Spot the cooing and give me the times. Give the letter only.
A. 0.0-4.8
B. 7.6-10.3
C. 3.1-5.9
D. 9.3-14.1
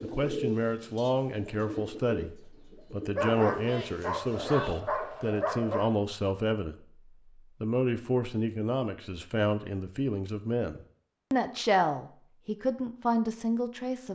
A.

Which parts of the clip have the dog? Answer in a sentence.
The dog can be heard from 3.1 to 5.9 s.